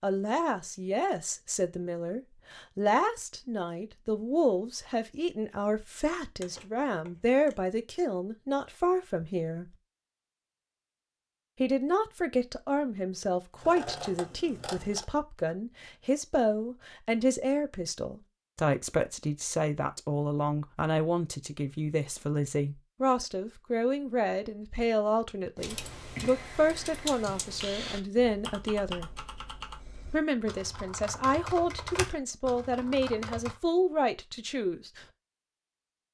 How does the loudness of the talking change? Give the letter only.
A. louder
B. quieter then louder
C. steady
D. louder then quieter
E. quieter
C.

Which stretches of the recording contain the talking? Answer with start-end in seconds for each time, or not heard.
0.0-9.8, 11.6-29.1, 30.1-35.0.